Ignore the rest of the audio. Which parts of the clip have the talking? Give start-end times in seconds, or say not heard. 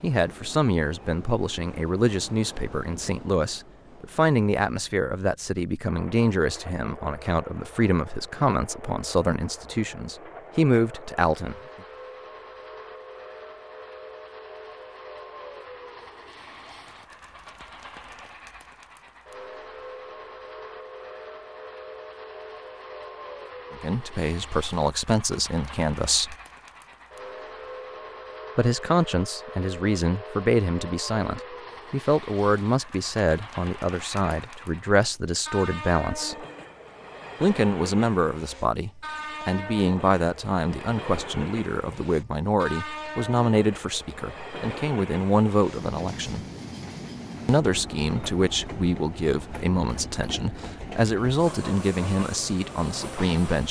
0.0-11.6, 23.7-26.4, 28.6-36.5, 37.4-46.5, 47.5-53.6.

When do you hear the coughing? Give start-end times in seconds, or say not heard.
not heard.